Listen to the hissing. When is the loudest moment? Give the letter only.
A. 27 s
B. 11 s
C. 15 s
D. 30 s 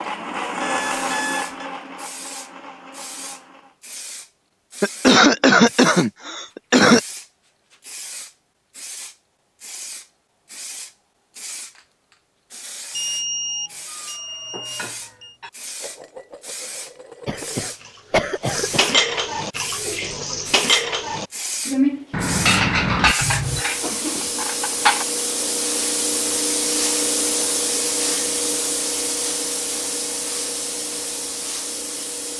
A.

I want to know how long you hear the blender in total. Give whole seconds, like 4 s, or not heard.
4 s.